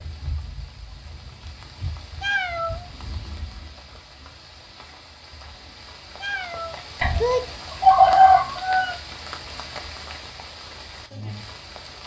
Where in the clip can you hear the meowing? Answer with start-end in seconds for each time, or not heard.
2.2-2.9, 6.2-7.5.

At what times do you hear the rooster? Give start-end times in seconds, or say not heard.
7.0-8.9.